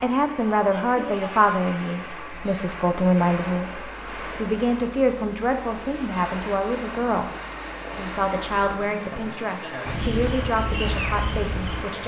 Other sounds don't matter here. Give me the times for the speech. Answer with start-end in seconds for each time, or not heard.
0.0-7.2, 8.0-12.0.